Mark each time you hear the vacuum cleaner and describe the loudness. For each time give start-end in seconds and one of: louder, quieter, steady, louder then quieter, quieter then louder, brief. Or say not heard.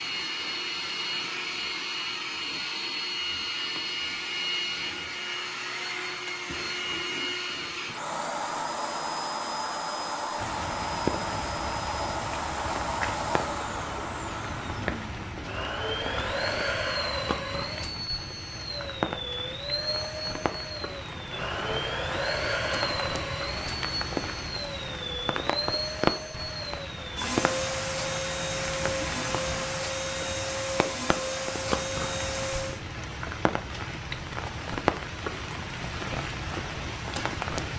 0.0-32.9 steady.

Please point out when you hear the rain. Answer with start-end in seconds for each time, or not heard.
10.3-37.7.